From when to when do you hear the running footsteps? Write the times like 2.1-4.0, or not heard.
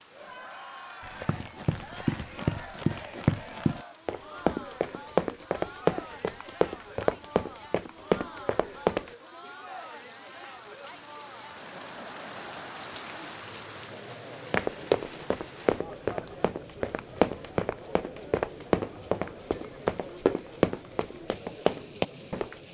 1.1-9.1, 14.5-22.6.